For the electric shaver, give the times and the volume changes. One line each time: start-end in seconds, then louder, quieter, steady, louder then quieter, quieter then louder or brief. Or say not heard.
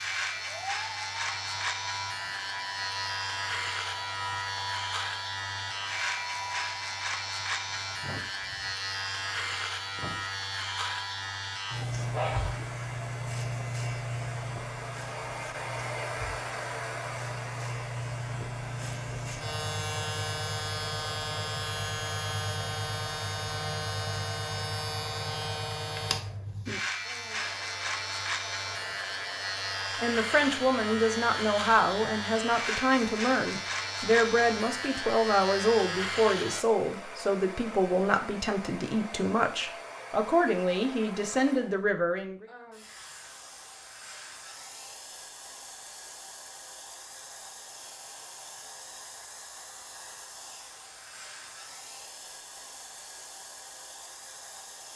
0.0-36.6 steady.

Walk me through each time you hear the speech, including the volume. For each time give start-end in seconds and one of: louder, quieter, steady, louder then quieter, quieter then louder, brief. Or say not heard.
30.0-42.5 steady.